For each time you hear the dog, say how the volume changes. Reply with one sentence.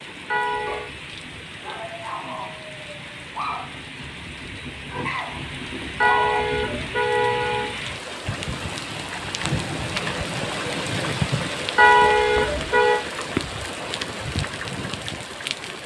The dog can be heard from 0.6 to 6.8 s, getting louder.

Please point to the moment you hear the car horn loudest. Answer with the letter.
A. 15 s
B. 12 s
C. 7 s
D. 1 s
B.